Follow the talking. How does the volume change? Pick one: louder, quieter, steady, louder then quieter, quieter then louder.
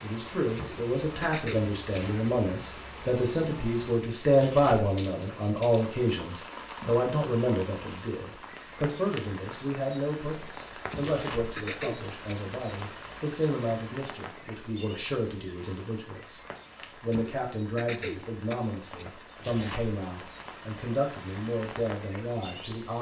quieter.